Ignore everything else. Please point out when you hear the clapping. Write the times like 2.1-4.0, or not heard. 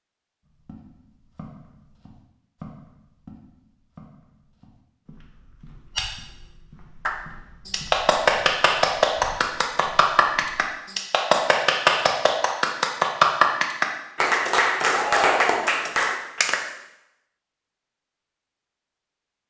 7.0-16.6.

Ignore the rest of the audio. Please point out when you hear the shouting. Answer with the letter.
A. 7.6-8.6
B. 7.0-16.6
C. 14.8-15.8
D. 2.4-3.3
C.